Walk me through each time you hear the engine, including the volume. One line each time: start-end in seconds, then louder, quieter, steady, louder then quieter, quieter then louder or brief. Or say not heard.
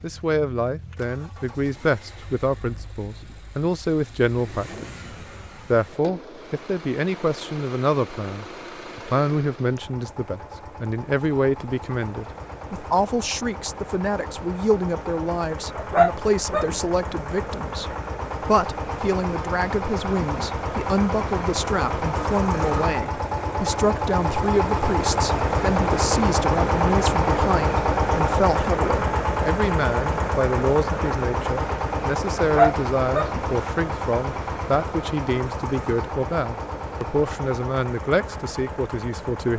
0.0-39.5 louder then quieter.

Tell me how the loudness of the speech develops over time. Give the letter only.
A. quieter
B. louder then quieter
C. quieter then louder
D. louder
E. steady
E.